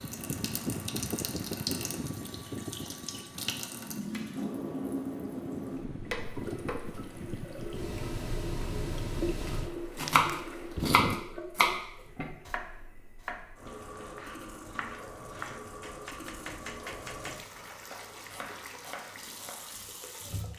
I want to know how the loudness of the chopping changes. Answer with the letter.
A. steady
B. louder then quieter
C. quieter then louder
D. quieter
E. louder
D.